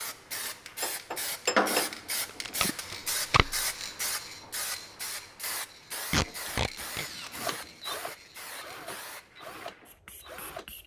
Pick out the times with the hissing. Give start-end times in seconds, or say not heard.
0.0-10.8.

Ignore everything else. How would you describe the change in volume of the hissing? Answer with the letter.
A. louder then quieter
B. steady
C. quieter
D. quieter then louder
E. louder
C.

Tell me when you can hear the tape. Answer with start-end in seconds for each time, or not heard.
2.5-3.5, 6.1-7.0.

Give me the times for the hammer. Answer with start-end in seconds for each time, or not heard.
0.8-1.9, 6.3-7.8.